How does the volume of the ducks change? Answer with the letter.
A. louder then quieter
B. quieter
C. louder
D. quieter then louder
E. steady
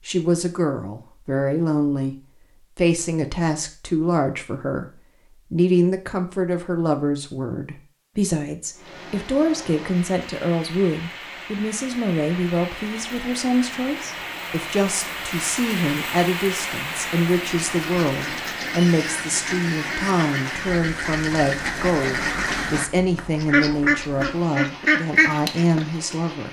C.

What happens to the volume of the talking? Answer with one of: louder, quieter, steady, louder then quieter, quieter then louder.
steady.